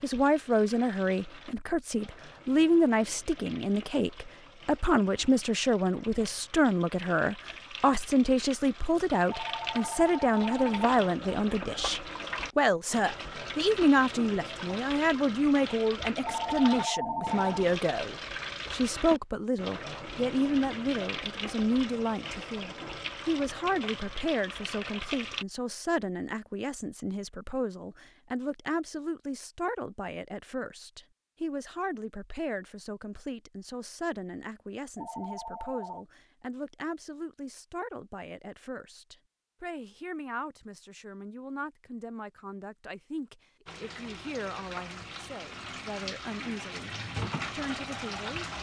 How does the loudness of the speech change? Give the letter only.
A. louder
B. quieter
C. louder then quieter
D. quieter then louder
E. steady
B.